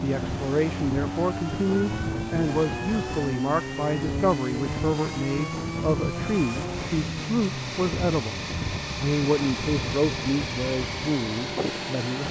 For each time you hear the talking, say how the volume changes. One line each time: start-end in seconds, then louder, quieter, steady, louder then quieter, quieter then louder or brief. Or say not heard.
0.0-12.2 steady.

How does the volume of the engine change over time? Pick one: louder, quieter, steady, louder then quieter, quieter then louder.
steady.